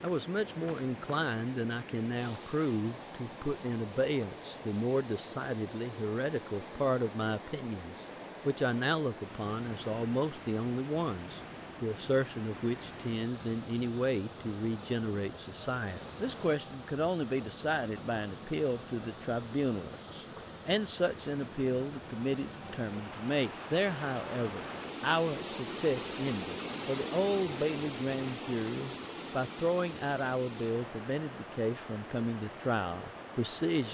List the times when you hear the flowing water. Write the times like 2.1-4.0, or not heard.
0.0-33.8.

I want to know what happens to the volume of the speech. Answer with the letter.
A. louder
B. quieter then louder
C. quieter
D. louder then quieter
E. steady
E.